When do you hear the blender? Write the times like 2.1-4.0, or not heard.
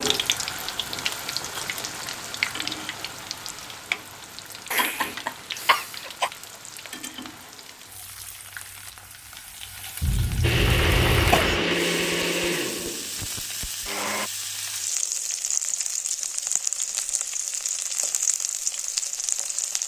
10.4-14.3.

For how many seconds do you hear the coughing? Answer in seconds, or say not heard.
3 s.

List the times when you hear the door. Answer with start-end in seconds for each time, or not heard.
10.6-11.8.